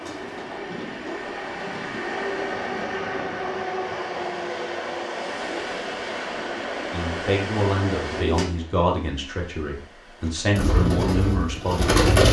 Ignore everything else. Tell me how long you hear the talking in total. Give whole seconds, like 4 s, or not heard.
5 s.